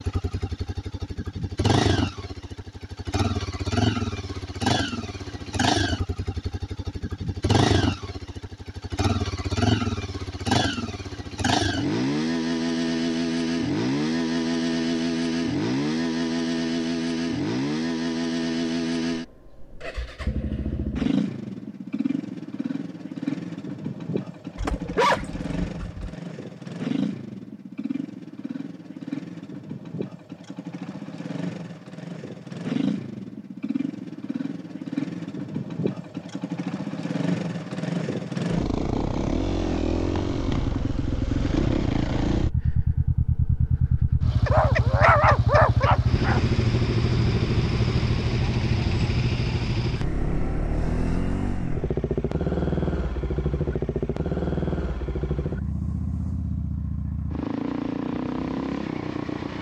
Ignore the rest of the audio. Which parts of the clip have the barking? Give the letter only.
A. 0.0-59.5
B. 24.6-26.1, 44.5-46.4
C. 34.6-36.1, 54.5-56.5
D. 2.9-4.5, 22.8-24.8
B.